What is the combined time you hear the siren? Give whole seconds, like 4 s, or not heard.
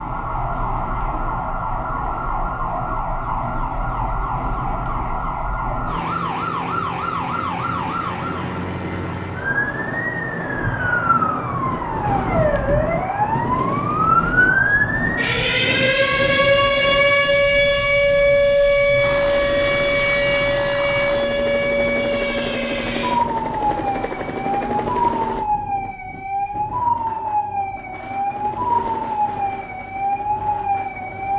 31 s.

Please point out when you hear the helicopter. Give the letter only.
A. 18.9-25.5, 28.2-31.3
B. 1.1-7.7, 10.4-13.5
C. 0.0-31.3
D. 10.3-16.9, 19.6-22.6
A.